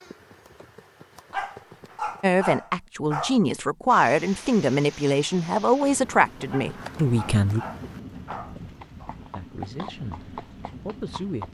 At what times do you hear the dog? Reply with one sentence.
You can hear the dog from 1.3 to 3.5 s and from 6.5 to 9.2 s.